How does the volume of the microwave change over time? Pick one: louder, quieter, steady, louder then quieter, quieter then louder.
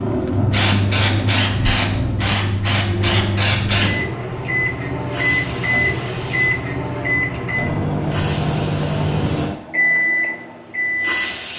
louder.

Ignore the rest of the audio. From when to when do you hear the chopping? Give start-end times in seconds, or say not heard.
not heard.